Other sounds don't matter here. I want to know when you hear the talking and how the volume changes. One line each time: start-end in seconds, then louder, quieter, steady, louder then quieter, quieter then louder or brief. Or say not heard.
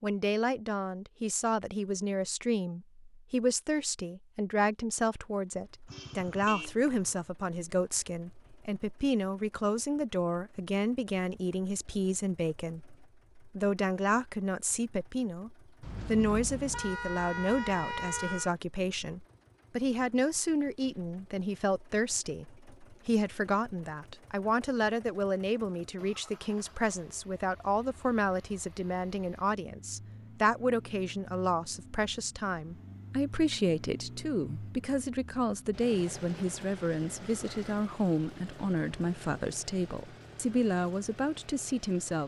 0.0-42.2 steady.